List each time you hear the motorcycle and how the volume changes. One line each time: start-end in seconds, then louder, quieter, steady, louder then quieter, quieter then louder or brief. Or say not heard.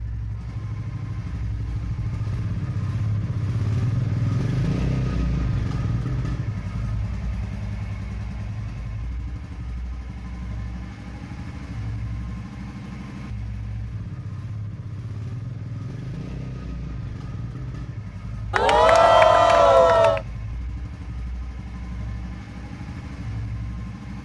0.0-24.2 quieter.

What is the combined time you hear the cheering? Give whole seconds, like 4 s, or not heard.
2 s.